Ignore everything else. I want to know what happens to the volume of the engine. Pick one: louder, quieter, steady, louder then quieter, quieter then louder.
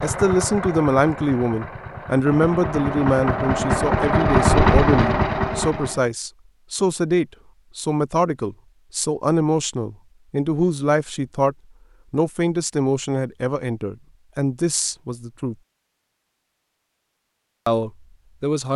louder.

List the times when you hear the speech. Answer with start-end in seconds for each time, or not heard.
0.0-15.6, 17.6-18.7.